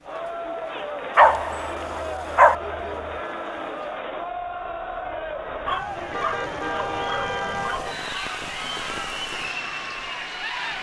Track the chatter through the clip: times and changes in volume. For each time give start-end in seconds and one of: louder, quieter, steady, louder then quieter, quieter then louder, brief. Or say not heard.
0.0-10.7 steady.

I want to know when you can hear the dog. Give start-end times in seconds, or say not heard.
1.1-2.5, 5.7-8.0.